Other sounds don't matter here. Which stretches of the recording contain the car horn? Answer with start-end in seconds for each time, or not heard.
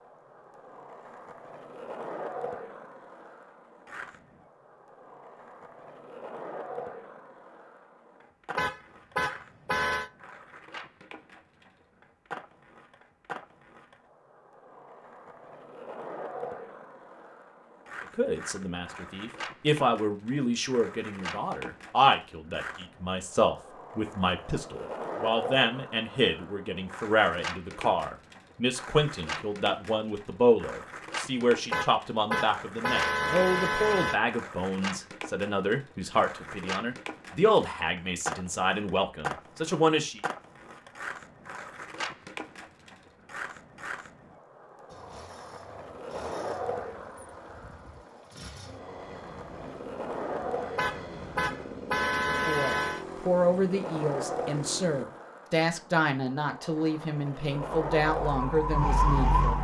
8.6-10.1, 31.7-34.1, 50.8-53.0.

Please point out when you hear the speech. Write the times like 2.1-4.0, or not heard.
18.1-40.2, 52.3-59.5.